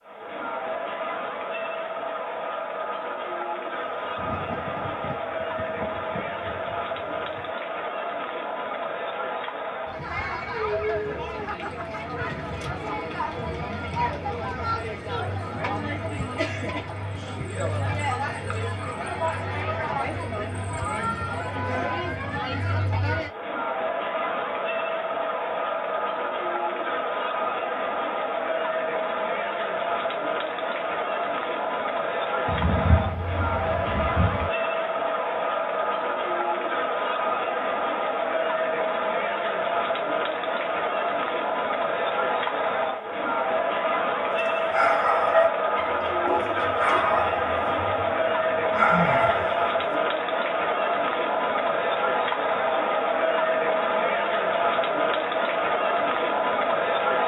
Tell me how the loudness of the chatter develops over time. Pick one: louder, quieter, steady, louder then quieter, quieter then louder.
louder.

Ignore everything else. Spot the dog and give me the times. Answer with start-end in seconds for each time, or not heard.
44.4-49.6.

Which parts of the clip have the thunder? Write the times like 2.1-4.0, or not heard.
4.0-7.5, 32.5-34.5.